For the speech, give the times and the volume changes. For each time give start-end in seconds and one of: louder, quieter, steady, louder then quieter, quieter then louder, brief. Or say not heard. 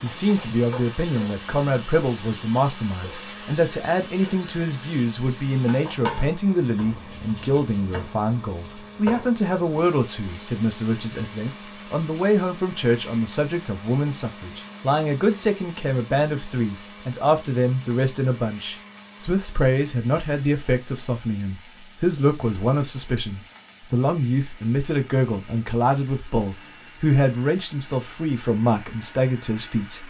0.0-30.0 steady.